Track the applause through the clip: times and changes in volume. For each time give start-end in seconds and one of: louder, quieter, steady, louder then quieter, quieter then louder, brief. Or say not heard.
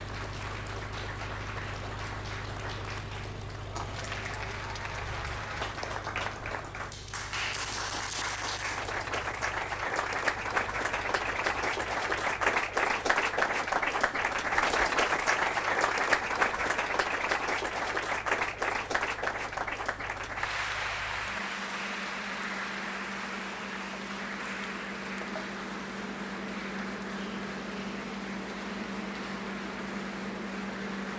0.0-31.1 louder then quieter.